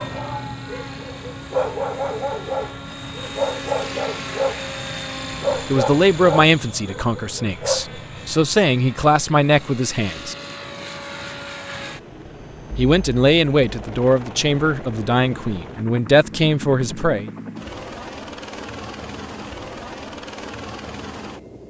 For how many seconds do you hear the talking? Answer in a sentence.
The talking can be heard for 9 seconds in total.